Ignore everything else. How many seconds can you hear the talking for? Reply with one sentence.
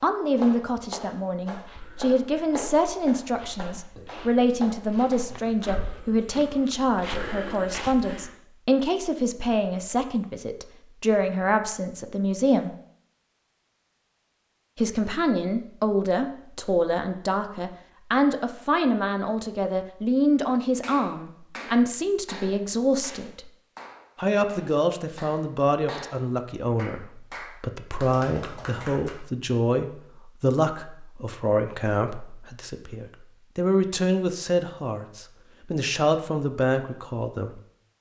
You can hear the talking for 35 seconds altogether.